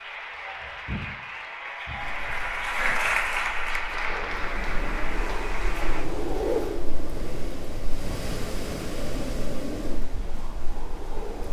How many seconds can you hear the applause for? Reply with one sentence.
The applause can be heard for 6 seconds in total.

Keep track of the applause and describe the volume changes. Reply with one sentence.
The volume of the applause goes up, then down.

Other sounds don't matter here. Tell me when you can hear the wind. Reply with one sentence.
The wind can be heard from 2.0 to 11.4 s.